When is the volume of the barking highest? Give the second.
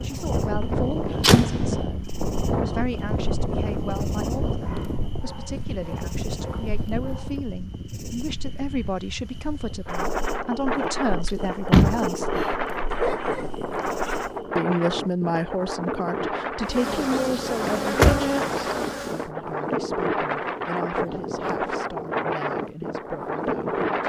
13 s.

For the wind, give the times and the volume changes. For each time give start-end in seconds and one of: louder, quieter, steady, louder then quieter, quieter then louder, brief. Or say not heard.
0.0-24.0 quieter then louder.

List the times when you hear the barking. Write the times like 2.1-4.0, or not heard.
4.6-7.4, 12.9-14.2.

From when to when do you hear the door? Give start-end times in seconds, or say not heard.
0.6-1.8, 11.2-12.5, 17.6-18.2.